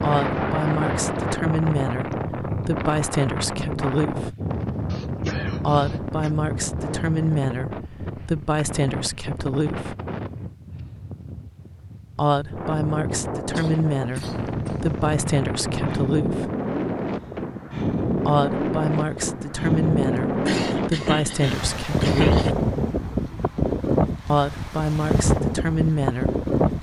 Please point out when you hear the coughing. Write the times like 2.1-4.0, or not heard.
4.9-6.3, 13.5-15.2, 20.4-22.6.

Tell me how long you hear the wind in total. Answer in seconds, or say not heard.
27 s.